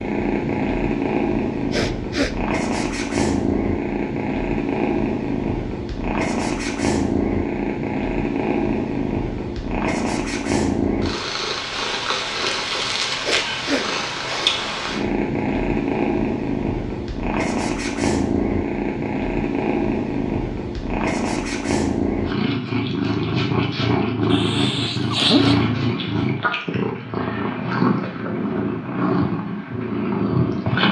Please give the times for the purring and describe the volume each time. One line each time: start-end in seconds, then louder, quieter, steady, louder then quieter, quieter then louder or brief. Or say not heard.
0.0-30.8 steady.